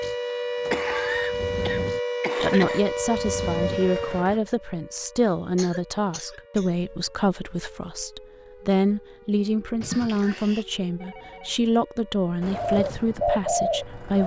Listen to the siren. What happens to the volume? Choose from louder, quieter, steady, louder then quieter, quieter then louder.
quieter.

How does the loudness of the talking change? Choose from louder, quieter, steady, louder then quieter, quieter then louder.
steady.